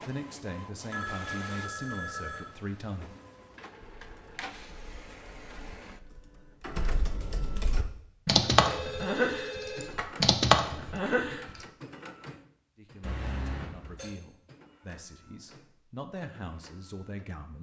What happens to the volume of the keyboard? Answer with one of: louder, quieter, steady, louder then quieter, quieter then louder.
louder.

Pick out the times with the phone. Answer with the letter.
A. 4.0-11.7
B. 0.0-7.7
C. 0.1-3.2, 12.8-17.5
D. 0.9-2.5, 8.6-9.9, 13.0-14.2
D.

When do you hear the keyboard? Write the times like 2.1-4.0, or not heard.
4.0-11.7.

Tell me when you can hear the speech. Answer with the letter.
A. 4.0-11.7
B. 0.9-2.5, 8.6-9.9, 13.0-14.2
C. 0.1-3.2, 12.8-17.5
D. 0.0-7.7
C.